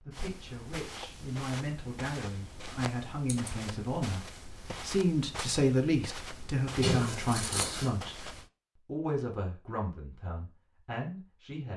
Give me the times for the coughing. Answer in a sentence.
The coughing can't be heard in this clip.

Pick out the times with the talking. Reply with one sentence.
The talking can be heard from 0.0 to 4.2 s, from 4.8 to 8.2 s and from 8.8 to 11.7 s.